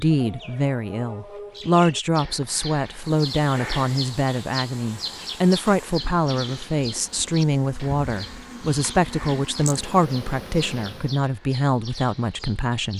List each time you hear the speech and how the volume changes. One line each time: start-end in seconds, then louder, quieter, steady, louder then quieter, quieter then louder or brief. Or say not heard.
0.0-12.9 steady.